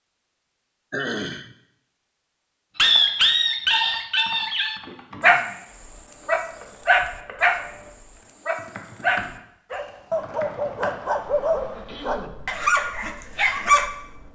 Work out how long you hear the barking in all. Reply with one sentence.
The barking can be heard for 11 seconds in total.